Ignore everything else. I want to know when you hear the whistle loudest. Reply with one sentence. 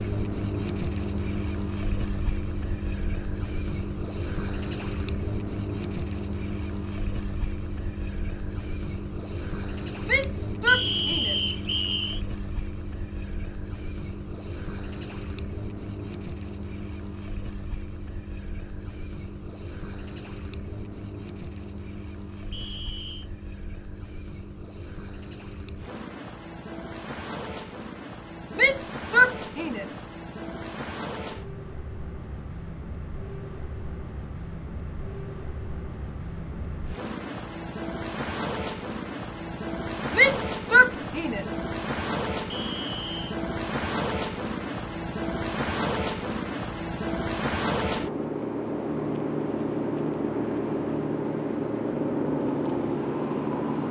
The volume of the whistle peaks at 11 seconds.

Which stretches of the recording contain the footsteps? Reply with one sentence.
You can't hear the footsteps here.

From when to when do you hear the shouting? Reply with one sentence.
The shouting can be heard from 10.1 to 11.5 s, from 28.6 to 30.0 s and from 40.1 to 41.5 s.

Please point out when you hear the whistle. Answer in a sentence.
The whistle can be heard from 10.7 to 12.2 s, from 22.5 to 23.3 s and from 42.5 to 43.3 s.